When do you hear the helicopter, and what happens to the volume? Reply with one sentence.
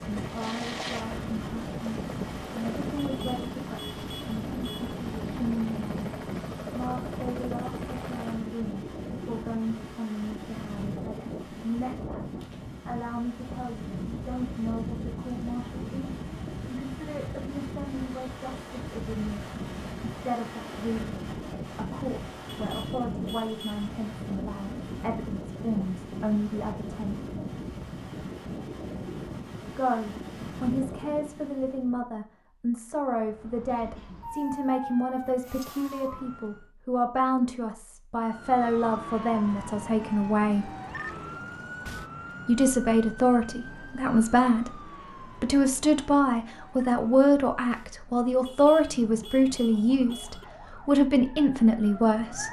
The helicopter can be heard from 0.0 to 8.4 s, at a steady volume.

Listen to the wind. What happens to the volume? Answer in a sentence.
The loudness of the wind stays about the same.